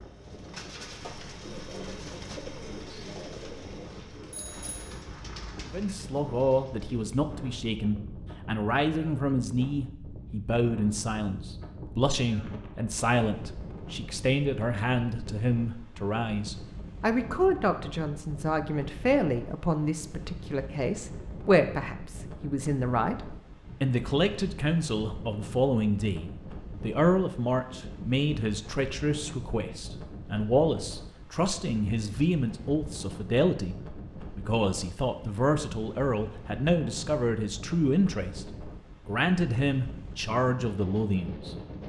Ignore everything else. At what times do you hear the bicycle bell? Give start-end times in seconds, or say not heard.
4.2-5.0.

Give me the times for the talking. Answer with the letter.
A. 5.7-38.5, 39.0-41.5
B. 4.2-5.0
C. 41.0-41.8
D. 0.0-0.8
A.